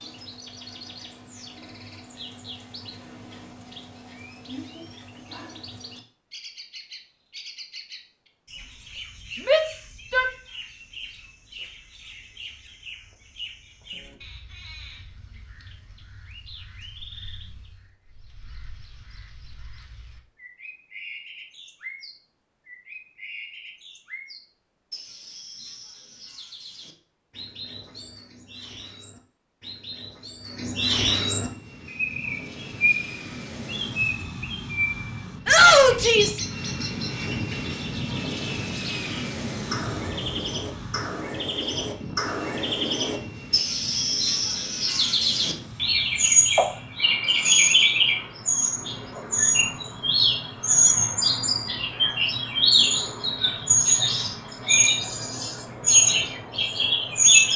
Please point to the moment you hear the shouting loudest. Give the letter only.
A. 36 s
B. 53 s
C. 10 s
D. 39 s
A.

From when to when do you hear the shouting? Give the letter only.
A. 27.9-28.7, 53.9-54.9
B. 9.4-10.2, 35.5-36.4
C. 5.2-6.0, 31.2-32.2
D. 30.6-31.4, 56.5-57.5
B.